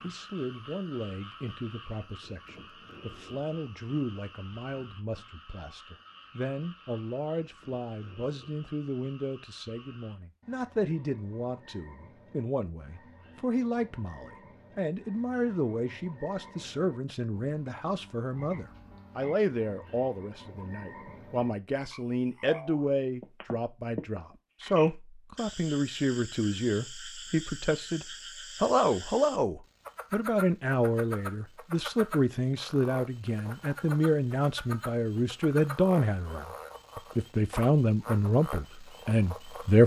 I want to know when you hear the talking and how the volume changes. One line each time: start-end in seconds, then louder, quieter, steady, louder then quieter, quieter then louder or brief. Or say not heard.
0.0-39.8 louder.